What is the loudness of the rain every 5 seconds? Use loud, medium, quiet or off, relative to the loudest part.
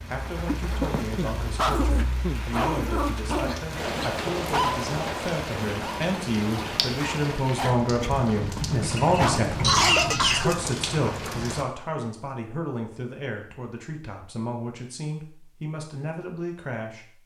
loud, loud, loud, off.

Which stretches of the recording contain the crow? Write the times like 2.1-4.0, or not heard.
not heard.